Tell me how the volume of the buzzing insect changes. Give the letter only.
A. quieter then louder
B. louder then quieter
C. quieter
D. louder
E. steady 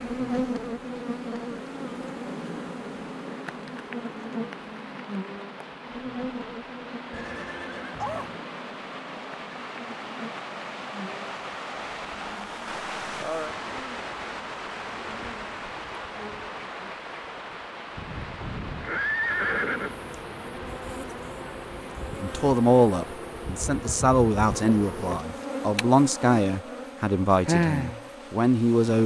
A.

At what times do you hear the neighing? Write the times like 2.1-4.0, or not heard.
7.1-8.3, 18.8-20.1.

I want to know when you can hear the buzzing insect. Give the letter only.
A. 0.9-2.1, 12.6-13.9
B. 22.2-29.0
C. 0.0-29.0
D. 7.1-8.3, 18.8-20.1
C.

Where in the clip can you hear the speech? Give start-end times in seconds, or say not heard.
22.2-29.0.